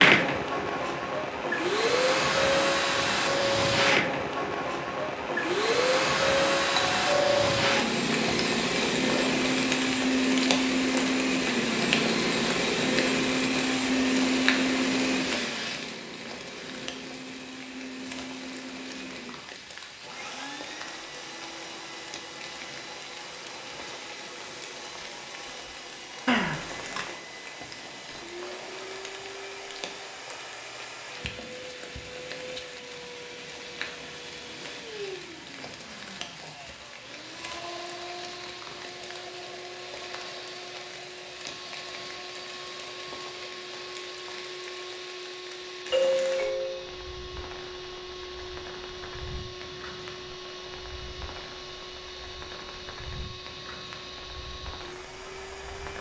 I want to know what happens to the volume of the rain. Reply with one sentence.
The volume of the rain goes down.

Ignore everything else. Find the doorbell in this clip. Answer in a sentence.
The doorbell can be heard from 6.8 to 7.5 s, from 26.2 to 27.1 s and from 45.9 to 46.9 s.